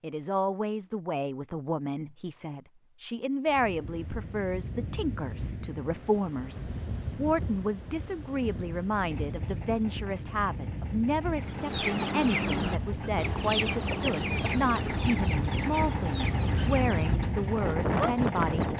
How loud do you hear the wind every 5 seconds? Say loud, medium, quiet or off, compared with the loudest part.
medium, medium, medium, loud.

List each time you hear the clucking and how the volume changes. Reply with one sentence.
The clucking can be heard from 11.3 to 17.2 s, getting quieter; and briefly from 17.8 to 18.7 s.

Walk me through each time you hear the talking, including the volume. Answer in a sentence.
You can hear the talking from 0.0 to 18.6 s, at a steady volume.